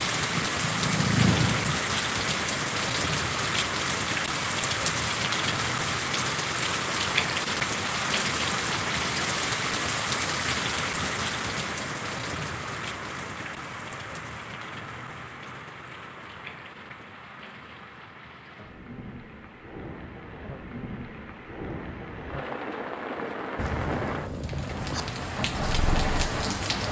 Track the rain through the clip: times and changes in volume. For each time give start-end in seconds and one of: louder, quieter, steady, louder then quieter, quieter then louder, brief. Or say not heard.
0.0-26.8 quieter then louder.